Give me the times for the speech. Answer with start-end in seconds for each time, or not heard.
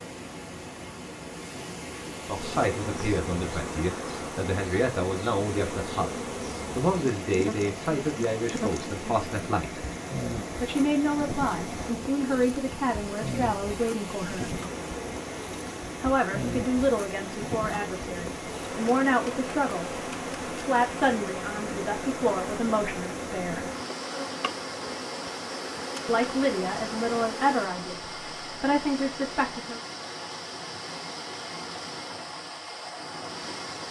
2.2-6.1, 6.8-9.8, 10.6-14.6, 16.0-23.6, 26.1-29.8.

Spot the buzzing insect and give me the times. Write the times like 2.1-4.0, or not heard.
2.4-27.7.